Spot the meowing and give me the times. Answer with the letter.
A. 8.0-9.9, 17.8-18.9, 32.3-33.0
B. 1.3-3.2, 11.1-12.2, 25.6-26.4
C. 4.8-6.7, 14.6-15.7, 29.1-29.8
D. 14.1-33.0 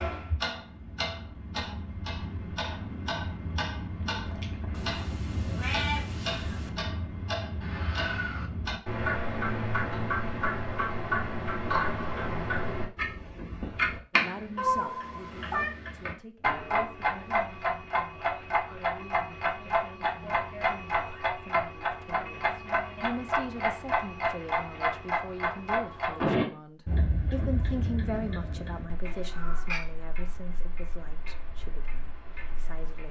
C.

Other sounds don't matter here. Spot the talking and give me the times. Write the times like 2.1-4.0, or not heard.
14.1-33.0.